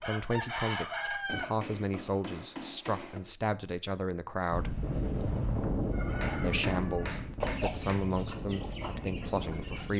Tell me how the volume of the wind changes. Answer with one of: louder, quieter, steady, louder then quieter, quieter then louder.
quieter.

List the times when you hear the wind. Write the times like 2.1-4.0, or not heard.
4.5-9.9.